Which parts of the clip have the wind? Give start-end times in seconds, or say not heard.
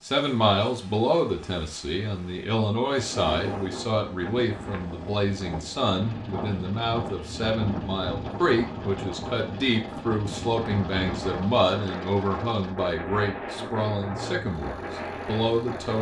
2.9-15.9.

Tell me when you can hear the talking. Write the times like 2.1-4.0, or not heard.
0.0-15.9.